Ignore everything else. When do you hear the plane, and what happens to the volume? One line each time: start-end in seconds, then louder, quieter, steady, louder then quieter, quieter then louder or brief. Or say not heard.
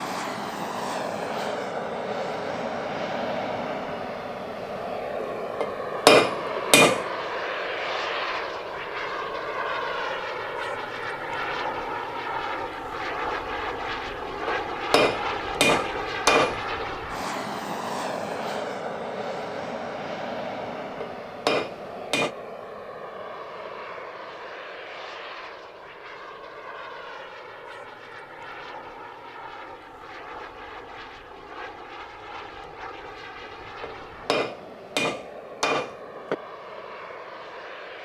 0.0-37.9 quieter.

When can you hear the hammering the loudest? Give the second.
6 s.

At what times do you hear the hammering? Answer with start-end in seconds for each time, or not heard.
5.2-7.0, 14.1-16.8, 20.8-22.4, 33.4-36.4.